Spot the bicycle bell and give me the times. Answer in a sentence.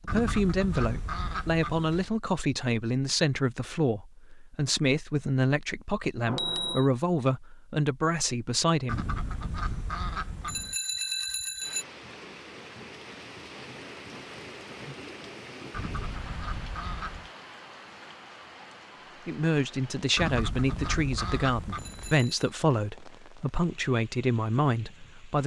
The bicycle bell can be heard from 6.2 to 6.9 s, from 10.4 to 11.8 s and from 21.8 to 22.3 s.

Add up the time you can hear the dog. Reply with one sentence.
The dog can't be heard in this clip.